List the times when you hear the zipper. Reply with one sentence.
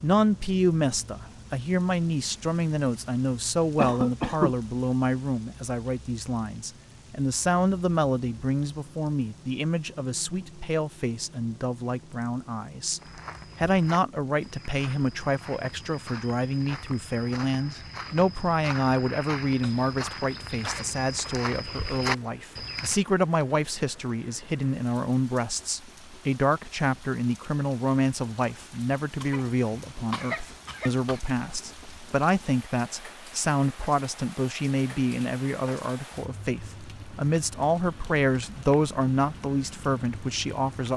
You can't hear the zipper here.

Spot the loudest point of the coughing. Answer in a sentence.
The loudest moment of the coughing is at 4 seconds.